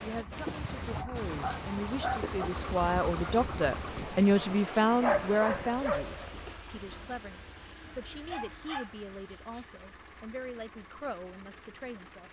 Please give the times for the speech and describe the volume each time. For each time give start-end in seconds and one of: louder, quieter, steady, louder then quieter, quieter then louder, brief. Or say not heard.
0.0-12.2 louder then quieter.